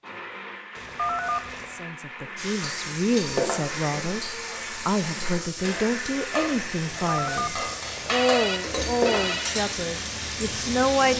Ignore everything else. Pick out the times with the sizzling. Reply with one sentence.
You can hear the sizzling from 2.4 to 11.1 s.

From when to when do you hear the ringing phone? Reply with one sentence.
The ringing phone can be heard from 0.8 to 1.8 s and from 7.0 to 9.5 s.